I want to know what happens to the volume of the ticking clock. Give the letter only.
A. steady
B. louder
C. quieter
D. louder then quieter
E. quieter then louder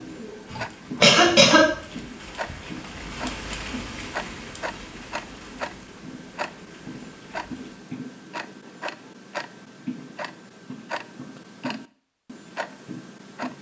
A.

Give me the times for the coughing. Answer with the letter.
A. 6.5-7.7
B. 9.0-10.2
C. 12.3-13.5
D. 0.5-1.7
D.